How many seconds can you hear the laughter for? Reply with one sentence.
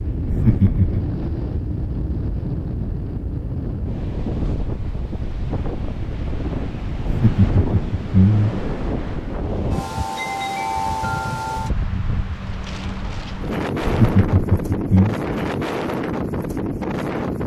The laughter can be heard for 4 seconds in total.